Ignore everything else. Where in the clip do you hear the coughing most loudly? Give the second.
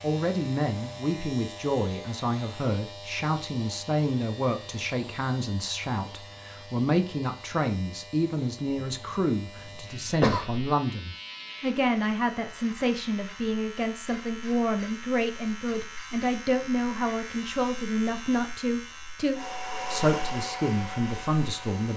10 s.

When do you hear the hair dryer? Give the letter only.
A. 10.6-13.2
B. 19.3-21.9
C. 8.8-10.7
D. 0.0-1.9
B.